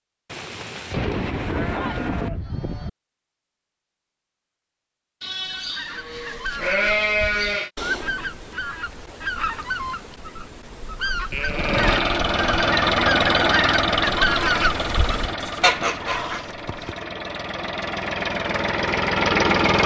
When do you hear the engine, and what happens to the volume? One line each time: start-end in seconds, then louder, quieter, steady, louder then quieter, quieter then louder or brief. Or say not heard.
11.4-19.8 quieter then louder.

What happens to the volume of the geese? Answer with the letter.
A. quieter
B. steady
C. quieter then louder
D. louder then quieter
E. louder
E.